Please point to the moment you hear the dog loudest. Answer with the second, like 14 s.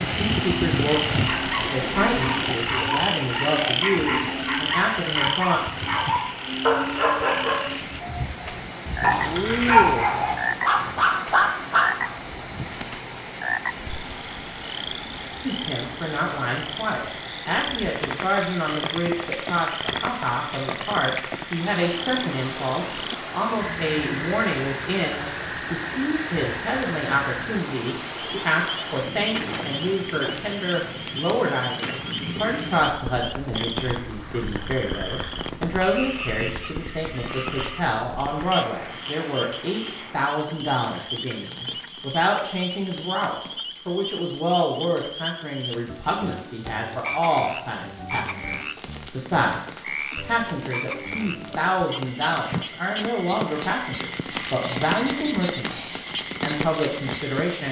10 s.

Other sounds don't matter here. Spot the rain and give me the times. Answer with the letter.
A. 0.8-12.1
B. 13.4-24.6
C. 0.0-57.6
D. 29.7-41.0
C.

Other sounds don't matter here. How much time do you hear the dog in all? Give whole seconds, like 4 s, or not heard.
11 s.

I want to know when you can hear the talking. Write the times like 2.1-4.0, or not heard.
0.2-5.6, 15.4-57.6.